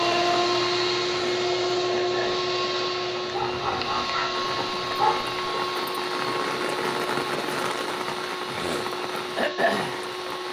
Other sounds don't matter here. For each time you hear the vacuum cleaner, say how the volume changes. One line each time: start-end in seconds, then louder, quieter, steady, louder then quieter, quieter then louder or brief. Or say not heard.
0.0-10.4 quieter.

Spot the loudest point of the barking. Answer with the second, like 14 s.
5 s.